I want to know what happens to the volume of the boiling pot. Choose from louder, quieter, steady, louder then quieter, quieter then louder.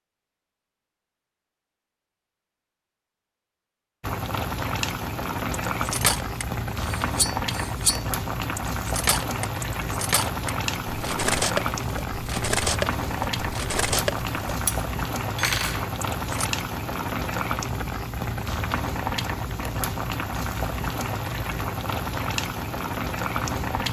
steady.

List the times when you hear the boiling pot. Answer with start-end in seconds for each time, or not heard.
4.0-23.8.